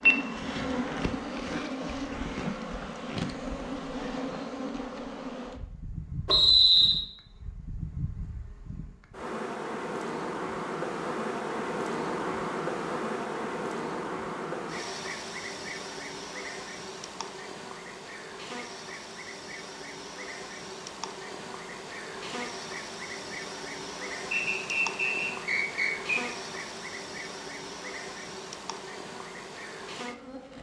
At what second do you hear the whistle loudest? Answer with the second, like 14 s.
7 s.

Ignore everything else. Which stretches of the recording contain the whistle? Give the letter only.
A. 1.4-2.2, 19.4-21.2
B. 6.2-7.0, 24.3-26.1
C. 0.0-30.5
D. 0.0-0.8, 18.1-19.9
B.